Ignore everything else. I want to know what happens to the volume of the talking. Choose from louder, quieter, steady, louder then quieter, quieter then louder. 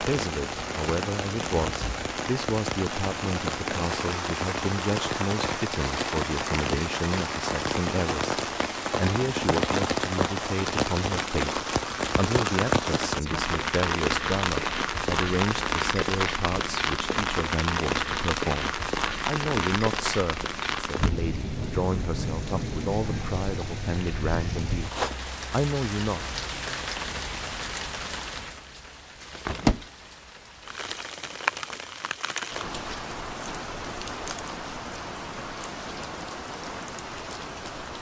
steady.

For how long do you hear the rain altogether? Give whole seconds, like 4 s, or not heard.
38 s.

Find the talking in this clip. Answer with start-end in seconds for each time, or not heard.
0.0-26.3.